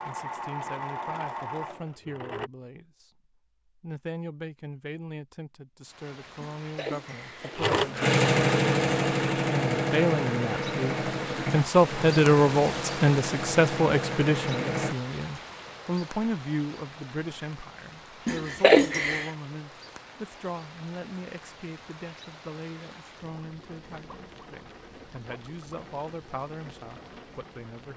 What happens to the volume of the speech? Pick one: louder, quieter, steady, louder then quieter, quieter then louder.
louder then quieter.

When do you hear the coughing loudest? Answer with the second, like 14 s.
19 s.